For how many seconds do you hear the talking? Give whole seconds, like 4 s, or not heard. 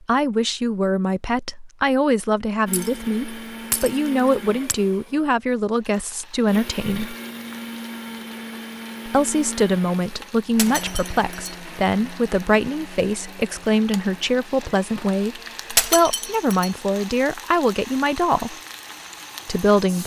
17 s.